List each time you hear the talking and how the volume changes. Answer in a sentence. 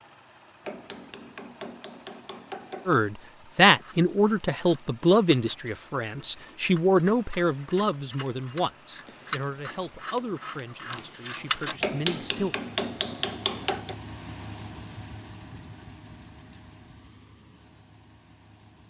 The talking can be heard from 2.9 to 12.6 s, getting quieter.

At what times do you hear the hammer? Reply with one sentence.
You can hear the hammer from 0.7 to 3.0 s and from 11.8 to 13.9 s.